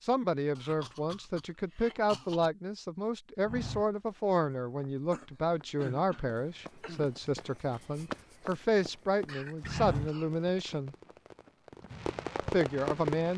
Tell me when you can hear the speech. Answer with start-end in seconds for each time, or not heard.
0.0-10.9, 12.5-13.3.